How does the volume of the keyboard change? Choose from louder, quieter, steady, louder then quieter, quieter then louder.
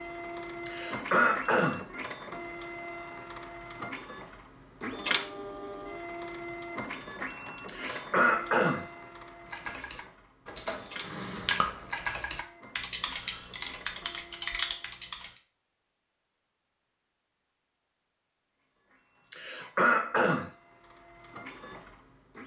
louder.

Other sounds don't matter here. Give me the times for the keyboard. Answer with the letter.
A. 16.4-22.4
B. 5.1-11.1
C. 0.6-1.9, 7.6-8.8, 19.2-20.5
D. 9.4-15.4
D.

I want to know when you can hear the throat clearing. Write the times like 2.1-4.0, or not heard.
0.6-1.9, 7.6-8.8, 19.2-20.5.